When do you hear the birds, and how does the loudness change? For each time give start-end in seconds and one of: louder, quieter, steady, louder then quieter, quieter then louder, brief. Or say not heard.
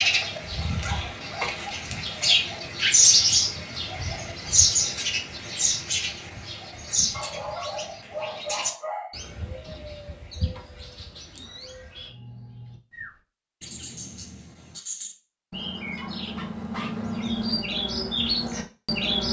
0.0-19.2 quieter then louder.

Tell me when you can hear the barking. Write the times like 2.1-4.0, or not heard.
0.2-1.8, 7.1-9.2, 15.9-17.1.